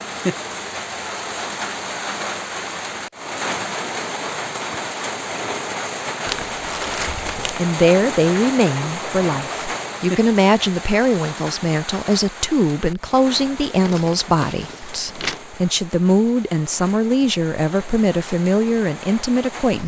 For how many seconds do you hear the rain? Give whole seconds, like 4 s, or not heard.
20 s.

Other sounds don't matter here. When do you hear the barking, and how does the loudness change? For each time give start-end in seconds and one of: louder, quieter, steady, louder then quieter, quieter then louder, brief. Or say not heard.
not heard.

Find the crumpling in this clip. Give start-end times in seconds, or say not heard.
6.2-7.5, 13.8-15.4.